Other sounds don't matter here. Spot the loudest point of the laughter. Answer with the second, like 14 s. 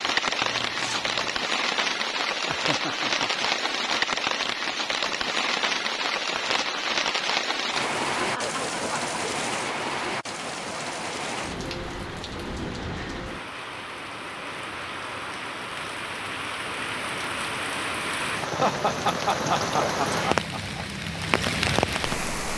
19 s.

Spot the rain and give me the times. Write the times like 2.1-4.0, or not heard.
0.0-22.5.